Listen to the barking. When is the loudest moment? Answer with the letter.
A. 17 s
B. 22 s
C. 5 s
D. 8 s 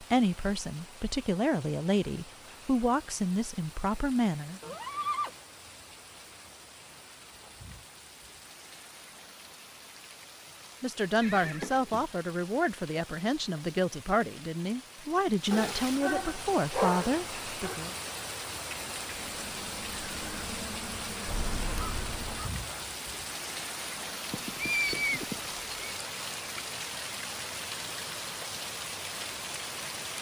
A.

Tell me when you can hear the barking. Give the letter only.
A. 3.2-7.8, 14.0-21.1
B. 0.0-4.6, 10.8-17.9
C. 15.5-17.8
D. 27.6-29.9
C.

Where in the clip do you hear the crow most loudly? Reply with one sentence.
The loudest moment of the crow is at 22 seconds.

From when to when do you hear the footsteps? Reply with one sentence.
The footsteps can't be heard in this clip.